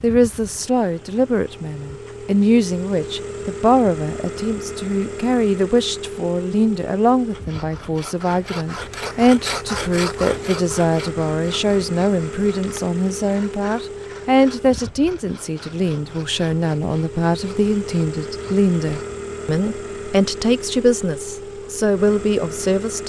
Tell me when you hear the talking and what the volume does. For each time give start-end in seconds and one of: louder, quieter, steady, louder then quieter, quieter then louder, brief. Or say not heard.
0.0-23.0 steady.